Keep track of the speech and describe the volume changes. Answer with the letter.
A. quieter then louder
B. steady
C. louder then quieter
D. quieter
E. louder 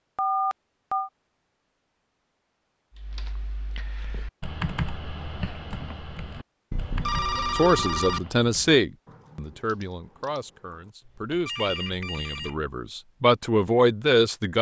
A.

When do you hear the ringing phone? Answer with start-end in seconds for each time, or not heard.
0.1-1.1, 6.7-8.2, 11.4-12.6.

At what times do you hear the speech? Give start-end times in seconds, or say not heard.
7.5-14.5.